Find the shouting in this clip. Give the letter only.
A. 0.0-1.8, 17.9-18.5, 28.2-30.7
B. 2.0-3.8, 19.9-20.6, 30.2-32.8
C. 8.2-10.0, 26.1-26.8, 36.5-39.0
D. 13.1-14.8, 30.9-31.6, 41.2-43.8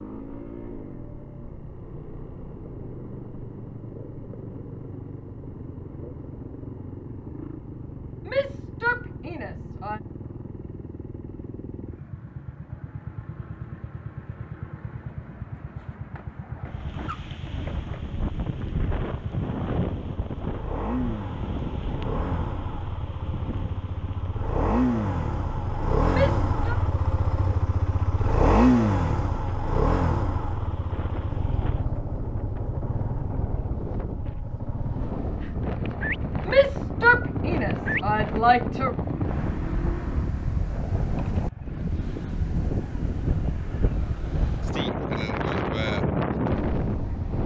C.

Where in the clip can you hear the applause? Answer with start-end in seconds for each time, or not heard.
not heard.